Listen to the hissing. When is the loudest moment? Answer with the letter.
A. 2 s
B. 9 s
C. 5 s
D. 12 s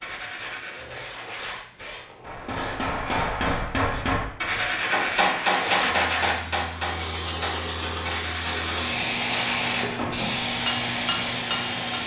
B.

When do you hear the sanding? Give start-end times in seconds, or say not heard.
0.0-1.6, 4.4-6.4, 8.1-10.1.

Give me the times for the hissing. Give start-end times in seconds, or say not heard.
0.0-12.0.